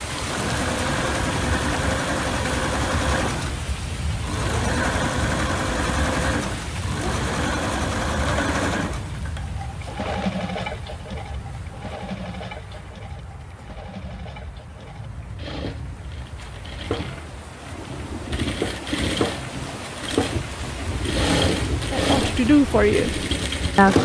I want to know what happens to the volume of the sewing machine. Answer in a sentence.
The volume of the sewing machine goes down, then up.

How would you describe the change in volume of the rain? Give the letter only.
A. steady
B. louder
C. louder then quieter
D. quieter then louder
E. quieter
D.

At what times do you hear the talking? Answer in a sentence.
You can hear the talking from 21.9 to 24.0 s.